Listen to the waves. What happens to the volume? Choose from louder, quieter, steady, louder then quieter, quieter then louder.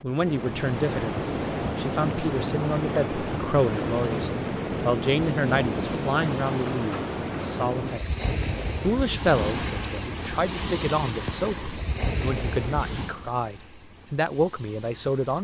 quieter.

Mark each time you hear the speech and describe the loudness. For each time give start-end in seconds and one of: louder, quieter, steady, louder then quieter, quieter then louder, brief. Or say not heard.
0.0-15.4 steady.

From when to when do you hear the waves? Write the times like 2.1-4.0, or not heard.
0.0-15.4.